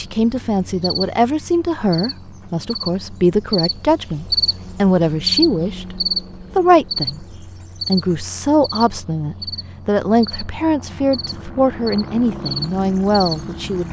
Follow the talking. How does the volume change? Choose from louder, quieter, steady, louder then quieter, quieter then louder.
steady.